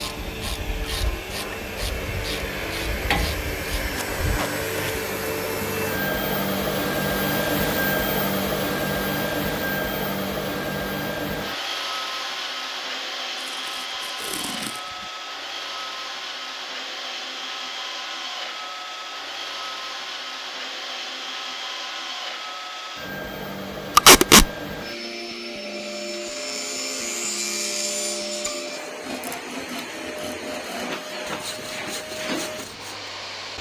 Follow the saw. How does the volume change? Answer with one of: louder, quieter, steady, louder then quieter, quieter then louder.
quieter.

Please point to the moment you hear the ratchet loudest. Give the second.
3 s.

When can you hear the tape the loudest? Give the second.
24 s.